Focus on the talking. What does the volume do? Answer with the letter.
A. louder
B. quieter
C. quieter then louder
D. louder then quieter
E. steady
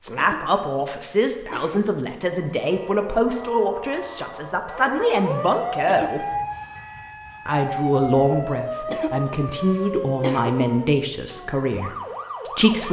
E.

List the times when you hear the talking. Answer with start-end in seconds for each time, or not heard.
0.0-6.3, 7.5-12.8.